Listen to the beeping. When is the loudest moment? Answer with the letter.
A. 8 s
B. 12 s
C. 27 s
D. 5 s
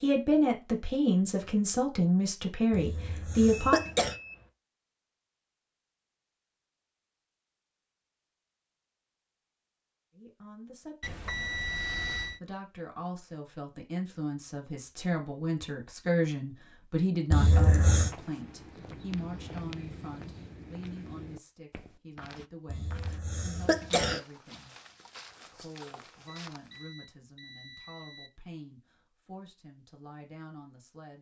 B.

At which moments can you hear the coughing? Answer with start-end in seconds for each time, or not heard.
2.7-4.2, 17.3-18.1, 22.6-24.2.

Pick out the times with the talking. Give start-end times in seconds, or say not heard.
0.0-3.8, 10.2-11.2, 12.3-24.8, 25.5-31.1.